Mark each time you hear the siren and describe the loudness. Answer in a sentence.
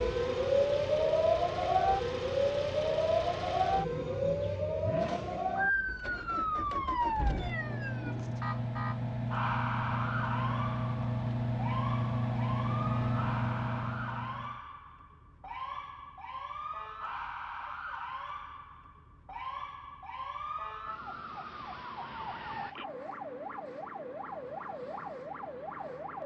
You can hear the siren from 0.0 to 26.2 s, getting quieter.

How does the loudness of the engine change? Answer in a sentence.
The loudness of the engine goes up.